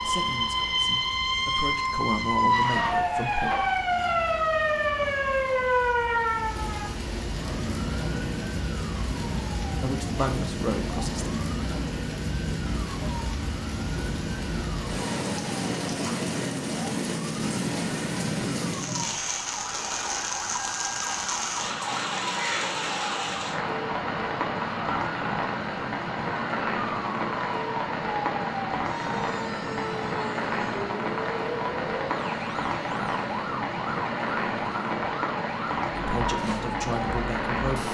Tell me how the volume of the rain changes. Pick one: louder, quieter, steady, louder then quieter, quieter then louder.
louder.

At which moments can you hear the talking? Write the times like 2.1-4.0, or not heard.
0.0-3.5, 9.8-11.4, 36.0-37.8.